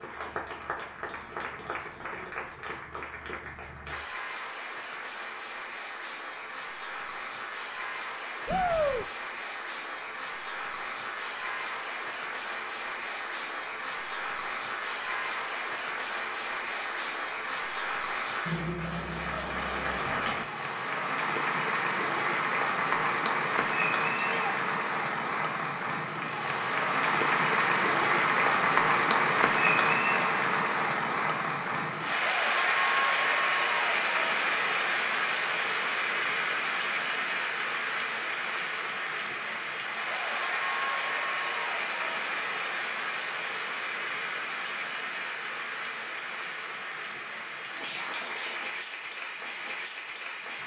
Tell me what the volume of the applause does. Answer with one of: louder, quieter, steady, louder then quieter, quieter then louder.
louder then quieter.